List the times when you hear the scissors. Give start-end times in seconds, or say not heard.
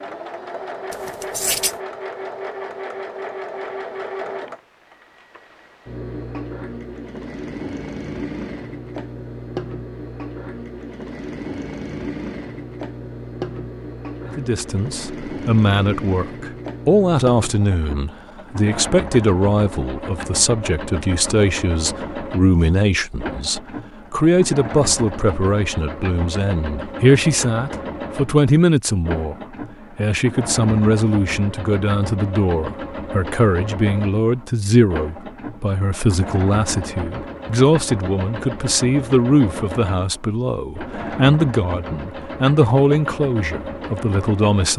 0.9-1.8.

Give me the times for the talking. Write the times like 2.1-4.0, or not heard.
14.2-29.4, 29.9-44.7.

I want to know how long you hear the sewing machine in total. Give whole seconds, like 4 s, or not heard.
45 s.